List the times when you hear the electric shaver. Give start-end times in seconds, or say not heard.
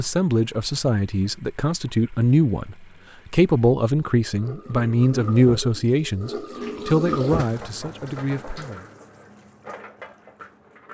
not heard.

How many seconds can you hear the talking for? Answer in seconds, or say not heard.
9 s.